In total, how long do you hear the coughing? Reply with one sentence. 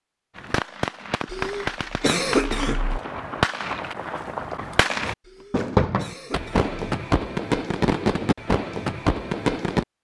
You can hear the coughing for 3 seconds altogether.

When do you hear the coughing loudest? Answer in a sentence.
The loudest moment of the coughing is at 2 seconds.